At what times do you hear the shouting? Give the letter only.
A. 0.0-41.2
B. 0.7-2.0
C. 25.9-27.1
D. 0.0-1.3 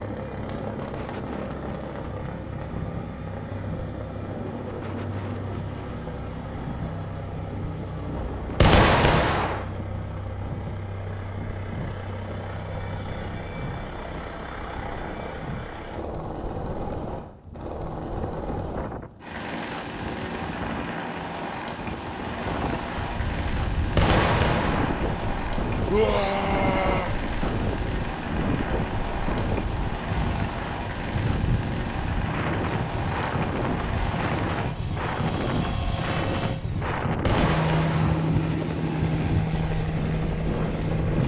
C.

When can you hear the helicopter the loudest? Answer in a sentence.
The volume of the helicopter peaks at 38 seconds.